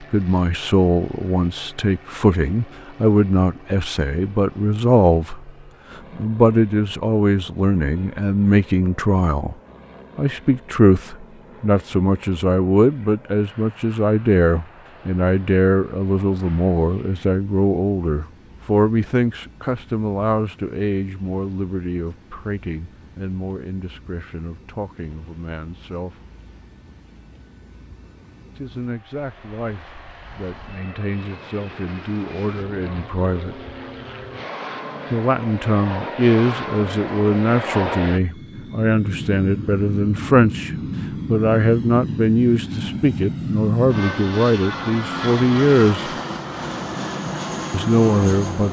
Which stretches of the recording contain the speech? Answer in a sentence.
The speech can be heard from 0.0 to 9.6 s, from 10.2 to 26.2 s, from 28.6 to 33.6 s, from 35.1 to 46.1 s and from 47.7 to 48.6 s.